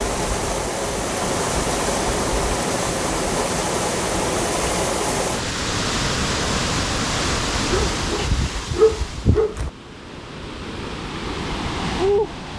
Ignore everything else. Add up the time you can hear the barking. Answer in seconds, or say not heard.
2 s.